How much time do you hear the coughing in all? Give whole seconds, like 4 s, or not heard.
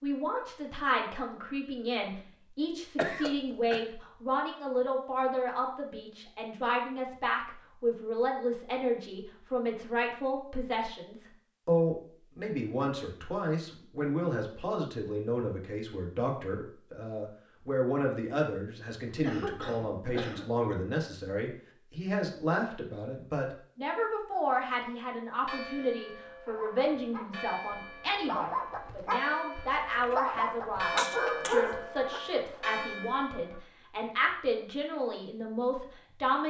3 s.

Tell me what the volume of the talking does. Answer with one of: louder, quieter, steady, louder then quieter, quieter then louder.
steady.